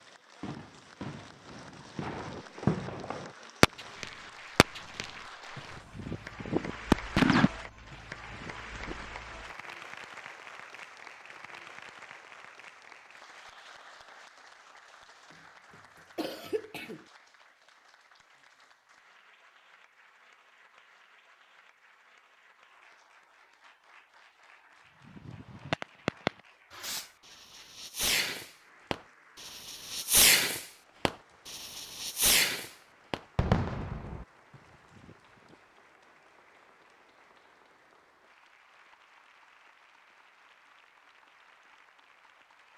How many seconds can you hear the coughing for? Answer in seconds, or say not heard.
2 s.